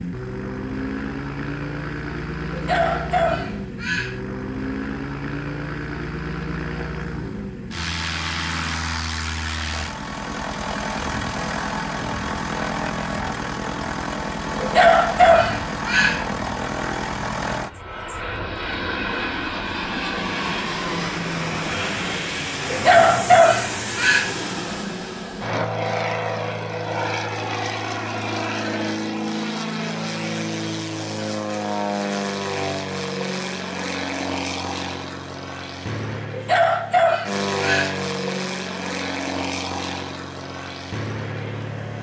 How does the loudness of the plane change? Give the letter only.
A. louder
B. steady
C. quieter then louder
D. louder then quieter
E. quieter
B.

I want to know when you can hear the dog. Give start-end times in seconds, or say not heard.
2.5-4.2, 14.6-16.2, 22.7-24.3, 36.3-38.0.